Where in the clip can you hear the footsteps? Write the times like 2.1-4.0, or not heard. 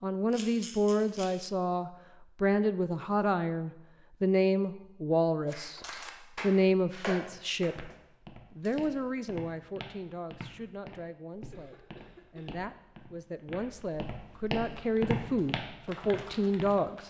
7.2-16.8.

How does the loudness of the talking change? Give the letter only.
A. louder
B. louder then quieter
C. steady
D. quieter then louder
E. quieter
D.